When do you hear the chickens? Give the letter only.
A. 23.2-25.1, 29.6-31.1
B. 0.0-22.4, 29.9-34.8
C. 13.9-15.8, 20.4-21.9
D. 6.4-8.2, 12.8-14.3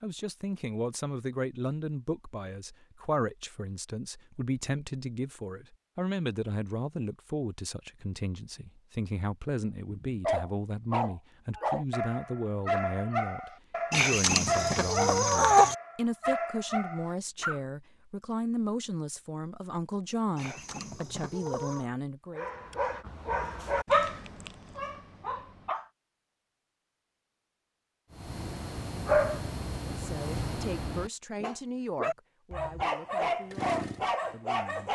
C.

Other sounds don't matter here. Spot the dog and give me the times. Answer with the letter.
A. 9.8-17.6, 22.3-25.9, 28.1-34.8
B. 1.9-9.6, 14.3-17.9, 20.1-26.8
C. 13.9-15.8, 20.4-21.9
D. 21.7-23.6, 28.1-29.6
A.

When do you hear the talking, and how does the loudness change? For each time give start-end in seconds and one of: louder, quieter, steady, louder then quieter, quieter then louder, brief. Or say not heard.
0.0-22.4 steady
29.9-34.8 quieter.